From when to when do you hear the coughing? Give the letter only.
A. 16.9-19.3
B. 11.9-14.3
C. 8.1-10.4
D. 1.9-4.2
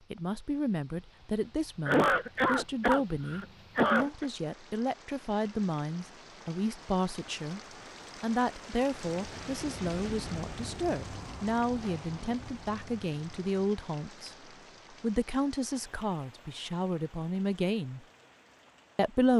D.